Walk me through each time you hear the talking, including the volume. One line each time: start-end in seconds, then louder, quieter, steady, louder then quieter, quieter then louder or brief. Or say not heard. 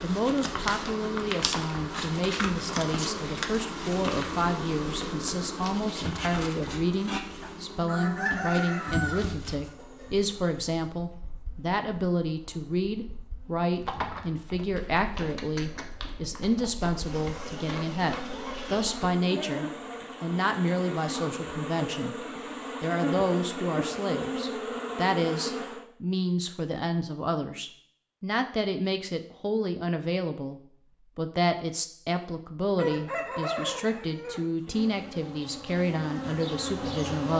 0.0-37.3 steady.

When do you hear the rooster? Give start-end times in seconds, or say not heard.
7.4-10.3, 32.8-34.5.